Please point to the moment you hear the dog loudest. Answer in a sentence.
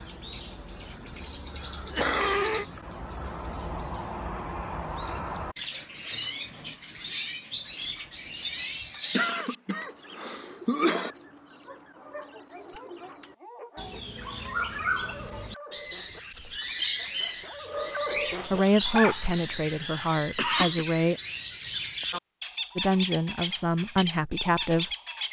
The volume of the dog peaks at 19 seconds.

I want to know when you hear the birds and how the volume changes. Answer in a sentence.
You can hear the birds from 0.0 to 25.2 s, at a steady volume.